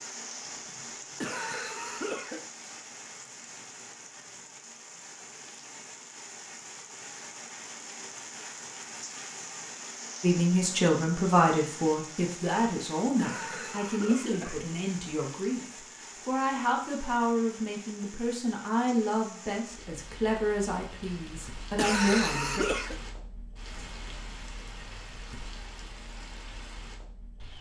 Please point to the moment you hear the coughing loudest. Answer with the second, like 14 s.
22 s.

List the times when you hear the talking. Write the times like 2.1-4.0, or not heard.
10.2-22.6.